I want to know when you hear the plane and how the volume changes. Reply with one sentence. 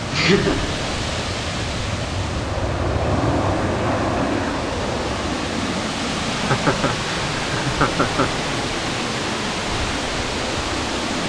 You can hear the plane from 0.0 to 11.2 s, getting louder then quieter.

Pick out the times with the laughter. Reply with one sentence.
The laughter can be heard from 0.1 to 0.8 s and from 6.3 to 8.3 s.